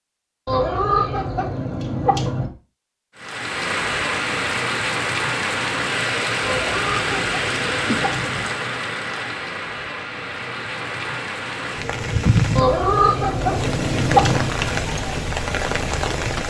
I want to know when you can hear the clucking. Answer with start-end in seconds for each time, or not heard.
0.5-2.5, 6.4-8.4, 12.6-14.5.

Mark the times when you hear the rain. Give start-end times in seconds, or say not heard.
3.1-16.4.